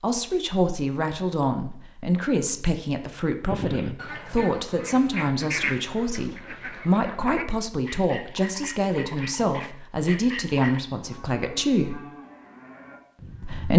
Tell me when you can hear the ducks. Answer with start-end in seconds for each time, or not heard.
3.4-10.8.